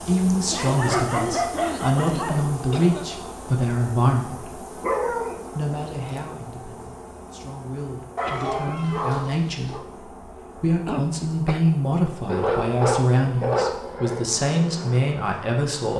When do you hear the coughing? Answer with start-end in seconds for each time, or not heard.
0.5-3.2, 8.2-9.1, 10.8-11.7.